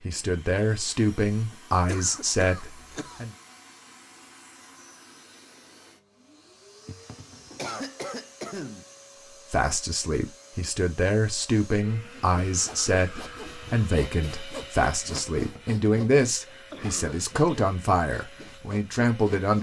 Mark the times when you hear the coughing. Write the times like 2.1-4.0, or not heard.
1.9-3.3, 6.8-8.8, 16.4-17.6.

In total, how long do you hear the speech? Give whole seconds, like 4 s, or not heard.
13 s.